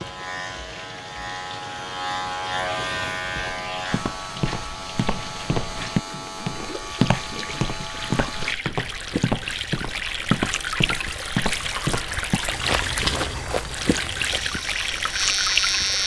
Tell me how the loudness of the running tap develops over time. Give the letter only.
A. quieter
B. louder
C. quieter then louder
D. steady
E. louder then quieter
B.